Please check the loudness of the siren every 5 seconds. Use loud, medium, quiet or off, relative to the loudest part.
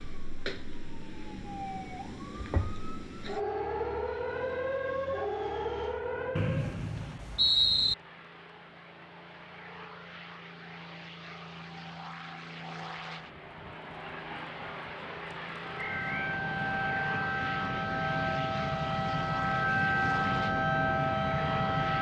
medium, medium, off, loud, loud.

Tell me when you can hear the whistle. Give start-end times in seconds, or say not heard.
6.3-8.0, 15.8-16.4.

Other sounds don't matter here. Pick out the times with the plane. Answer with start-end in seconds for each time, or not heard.
0.0-21.9.